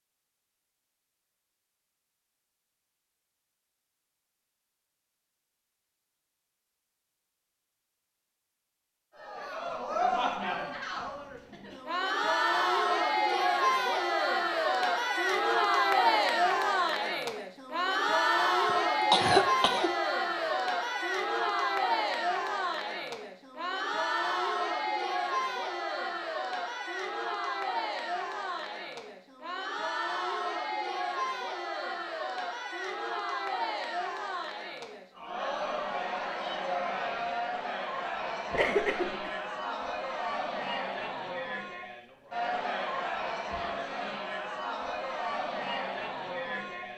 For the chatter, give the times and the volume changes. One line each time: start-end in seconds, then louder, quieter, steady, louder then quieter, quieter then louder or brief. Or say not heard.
9.2-46.9 quieter.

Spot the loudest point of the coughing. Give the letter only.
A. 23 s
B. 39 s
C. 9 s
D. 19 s
D.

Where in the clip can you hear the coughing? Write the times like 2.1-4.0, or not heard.
18.6-19.9, 38.5-39.3.